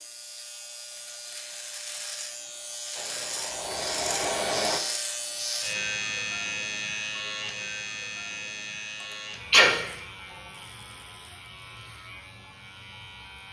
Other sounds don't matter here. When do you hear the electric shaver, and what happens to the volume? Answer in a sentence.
The electric shaver can be heard from 0.0 to 13.4 s, getting louder then quieter.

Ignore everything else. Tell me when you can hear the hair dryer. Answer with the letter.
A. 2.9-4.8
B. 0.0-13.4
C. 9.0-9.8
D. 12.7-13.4
A.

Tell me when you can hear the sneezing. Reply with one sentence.
The sneezing can be heard from 9.0 to 9.8 s.